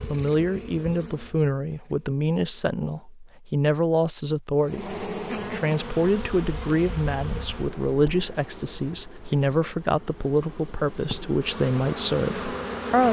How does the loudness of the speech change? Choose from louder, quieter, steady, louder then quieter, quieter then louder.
steady.